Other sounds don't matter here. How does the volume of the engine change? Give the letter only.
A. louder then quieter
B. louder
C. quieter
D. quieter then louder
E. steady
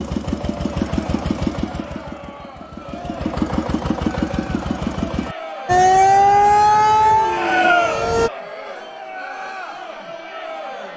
D.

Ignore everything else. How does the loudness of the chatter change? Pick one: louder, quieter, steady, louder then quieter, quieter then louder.
louder then quieter.